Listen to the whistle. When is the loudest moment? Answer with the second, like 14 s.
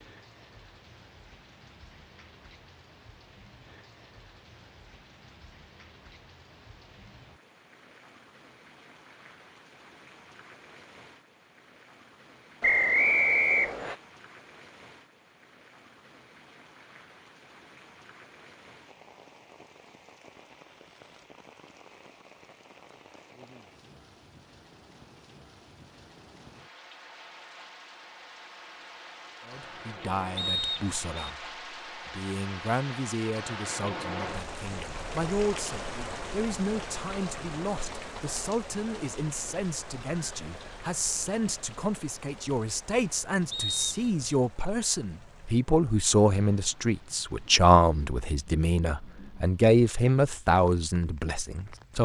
13 s.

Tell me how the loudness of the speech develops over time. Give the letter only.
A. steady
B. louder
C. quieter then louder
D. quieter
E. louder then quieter
B.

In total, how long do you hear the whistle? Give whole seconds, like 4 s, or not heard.
3 s.